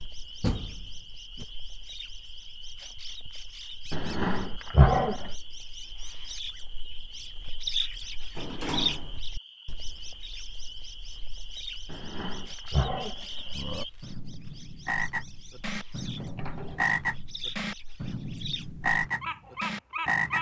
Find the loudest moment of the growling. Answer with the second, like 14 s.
5 s.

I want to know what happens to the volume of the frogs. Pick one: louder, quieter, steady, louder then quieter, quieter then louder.
louder.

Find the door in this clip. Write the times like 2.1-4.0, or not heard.
0.4-1.4, 8.3-9.2, 16.1-16.9.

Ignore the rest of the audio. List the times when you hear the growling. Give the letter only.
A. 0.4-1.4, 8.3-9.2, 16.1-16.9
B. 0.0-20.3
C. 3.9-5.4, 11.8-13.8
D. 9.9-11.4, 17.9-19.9
C.